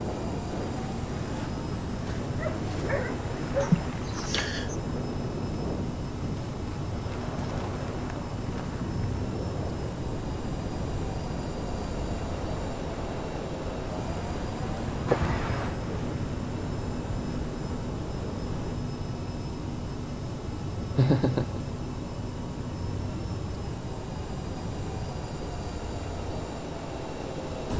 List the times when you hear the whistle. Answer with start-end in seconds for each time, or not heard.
not heard.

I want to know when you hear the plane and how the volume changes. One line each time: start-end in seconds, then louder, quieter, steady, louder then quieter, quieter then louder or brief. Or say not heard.
0.0-27.7 steady.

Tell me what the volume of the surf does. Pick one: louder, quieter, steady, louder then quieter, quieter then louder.
steady.